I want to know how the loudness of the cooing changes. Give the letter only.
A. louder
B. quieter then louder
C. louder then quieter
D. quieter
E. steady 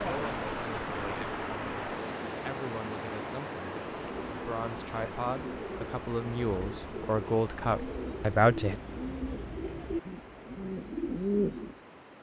A.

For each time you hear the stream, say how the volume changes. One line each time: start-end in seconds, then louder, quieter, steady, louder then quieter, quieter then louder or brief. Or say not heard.
0.0-12.1 quieter.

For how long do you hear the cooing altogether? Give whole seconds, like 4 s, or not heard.
8 s.